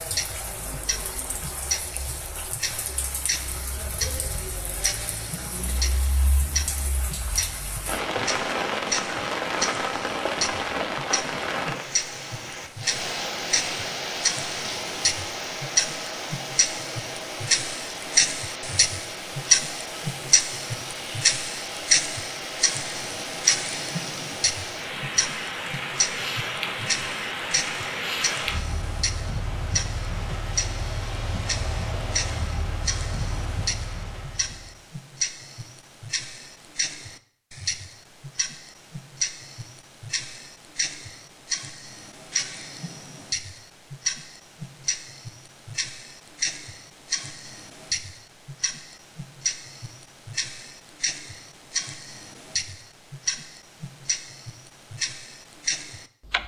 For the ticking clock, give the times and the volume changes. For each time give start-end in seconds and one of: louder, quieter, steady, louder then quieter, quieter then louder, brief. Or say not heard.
0.0-56.4 louder then quieter.